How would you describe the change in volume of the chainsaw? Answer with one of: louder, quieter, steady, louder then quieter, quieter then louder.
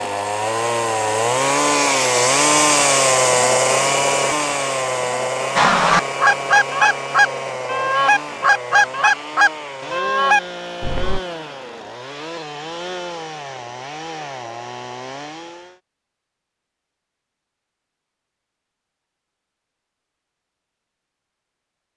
quieter.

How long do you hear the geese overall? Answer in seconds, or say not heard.
6 s.